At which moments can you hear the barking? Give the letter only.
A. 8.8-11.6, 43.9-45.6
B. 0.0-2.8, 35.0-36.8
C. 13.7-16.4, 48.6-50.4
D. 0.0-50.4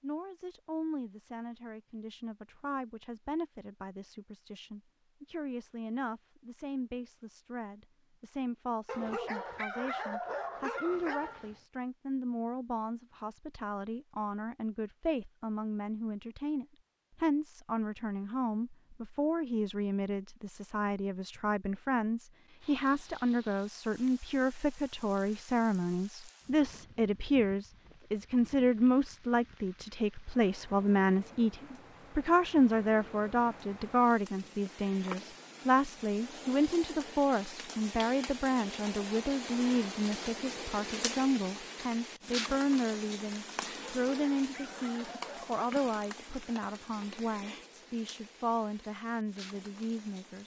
A.